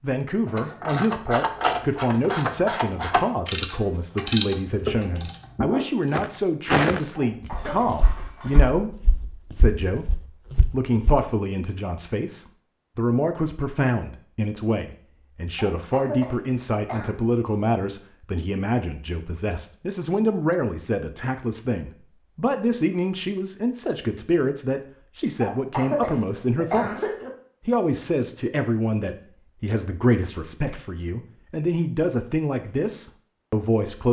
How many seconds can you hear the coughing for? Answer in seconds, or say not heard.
4 s.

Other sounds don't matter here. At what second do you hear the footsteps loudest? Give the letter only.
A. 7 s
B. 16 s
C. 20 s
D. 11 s
A.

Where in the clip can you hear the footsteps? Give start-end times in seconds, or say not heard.
6.1-11.2.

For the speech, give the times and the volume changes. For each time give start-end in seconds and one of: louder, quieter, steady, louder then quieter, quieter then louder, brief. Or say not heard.
0.0-34.0 steady.